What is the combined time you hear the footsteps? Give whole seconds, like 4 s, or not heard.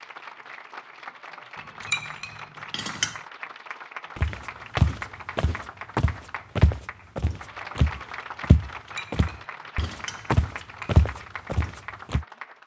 8 s.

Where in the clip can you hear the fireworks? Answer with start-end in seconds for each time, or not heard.
not heard.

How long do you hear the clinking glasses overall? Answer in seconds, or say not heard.
4 s.